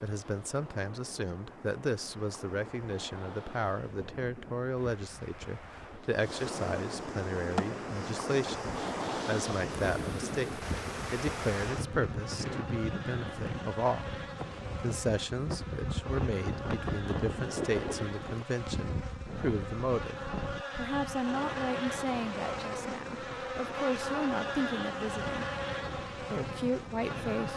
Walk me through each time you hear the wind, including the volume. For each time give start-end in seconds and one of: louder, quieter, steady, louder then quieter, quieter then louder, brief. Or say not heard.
0.0-27.5 louder then quieter.